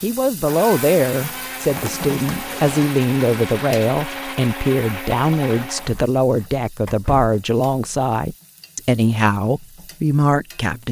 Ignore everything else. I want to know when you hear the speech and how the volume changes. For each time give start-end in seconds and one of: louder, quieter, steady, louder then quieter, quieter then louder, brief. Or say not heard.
0.0-10.8 steady.